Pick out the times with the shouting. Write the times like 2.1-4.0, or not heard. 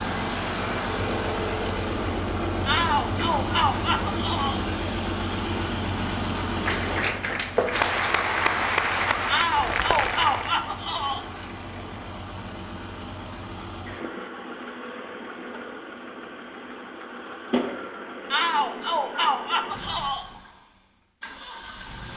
2.6-4.7, 9.2-11.2, 18.3-20.3.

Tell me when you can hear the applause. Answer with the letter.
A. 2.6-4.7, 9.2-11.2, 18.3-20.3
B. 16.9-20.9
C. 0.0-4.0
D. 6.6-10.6
D.